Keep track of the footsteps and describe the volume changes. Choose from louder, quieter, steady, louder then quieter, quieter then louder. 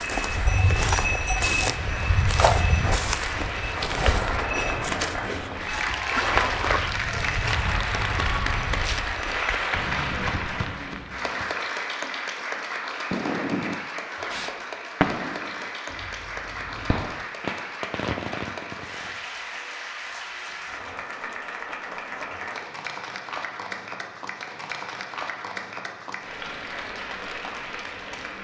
quieter.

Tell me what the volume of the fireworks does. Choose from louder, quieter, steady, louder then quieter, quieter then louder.
quieter then louder.